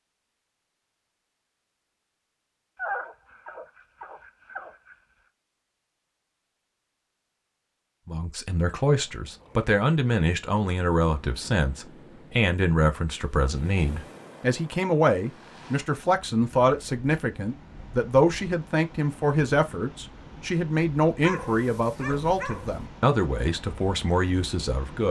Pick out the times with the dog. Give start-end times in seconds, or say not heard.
2.8-5.0, 21.2-22.8.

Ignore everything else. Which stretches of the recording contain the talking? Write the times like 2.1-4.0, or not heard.
8.1-25.0.